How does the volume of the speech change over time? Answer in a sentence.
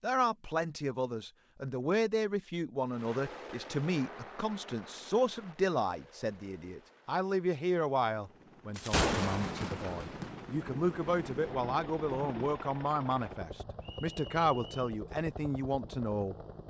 The loudness of the speech stays about the same.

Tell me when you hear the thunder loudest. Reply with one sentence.
The loudest moment of the thunder is at 9 seconds.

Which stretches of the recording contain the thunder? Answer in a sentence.
You can hear the thunder from 8.8 to 12.6 s.